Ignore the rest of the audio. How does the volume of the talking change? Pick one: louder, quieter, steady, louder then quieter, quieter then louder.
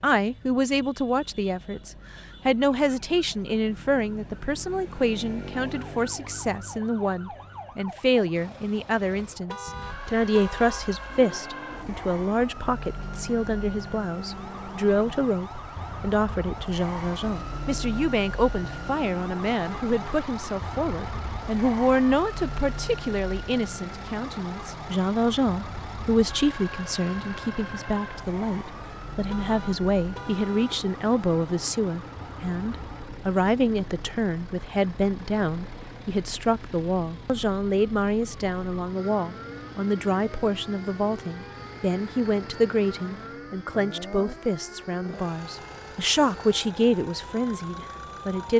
steady.